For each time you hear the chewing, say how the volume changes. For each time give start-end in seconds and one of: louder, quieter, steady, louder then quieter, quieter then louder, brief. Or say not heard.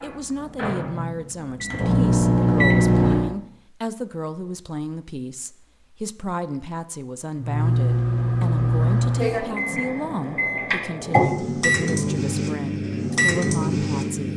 not heard.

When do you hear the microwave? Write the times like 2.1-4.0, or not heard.
0.0-3.3, 7.4-14.3.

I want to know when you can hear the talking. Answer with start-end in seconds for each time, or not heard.
0.0-14.3.